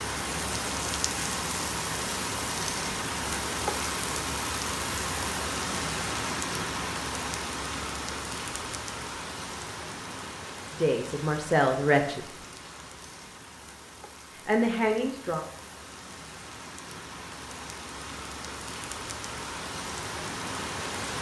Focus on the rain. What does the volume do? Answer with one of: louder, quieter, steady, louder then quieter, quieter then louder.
quieter then louder.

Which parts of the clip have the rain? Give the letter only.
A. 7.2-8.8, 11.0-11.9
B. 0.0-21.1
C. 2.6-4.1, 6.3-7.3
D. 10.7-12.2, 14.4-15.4
B.